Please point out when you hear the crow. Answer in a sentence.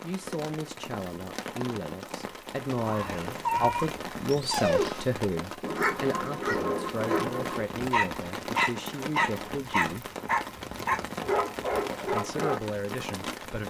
You can't hear the crow here.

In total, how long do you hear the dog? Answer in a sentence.
You can hear the dog for 10 seconds altogether.